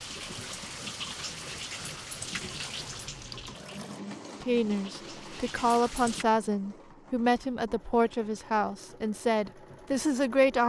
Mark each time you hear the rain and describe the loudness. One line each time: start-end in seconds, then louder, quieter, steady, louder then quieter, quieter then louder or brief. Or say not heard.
0.0-6.2 quieter then louder.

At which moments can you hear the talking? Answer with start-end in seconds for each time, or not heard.
4.3-10.6.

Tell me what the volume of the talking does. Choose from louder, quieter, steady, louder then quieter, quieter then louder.
steady.